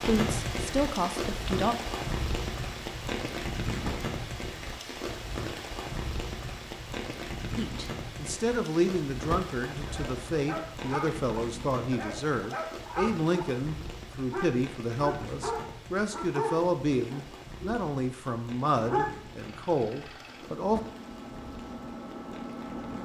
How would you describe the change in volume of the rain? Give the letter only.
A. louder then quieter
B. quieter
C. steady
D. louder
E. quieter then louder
B.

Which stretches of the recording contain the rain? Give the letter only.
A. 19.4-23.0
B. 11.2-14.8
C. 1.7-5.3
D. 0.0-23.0
D.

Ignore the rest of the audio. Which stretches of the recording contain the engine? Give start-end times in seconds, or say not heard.
19.4-23.0.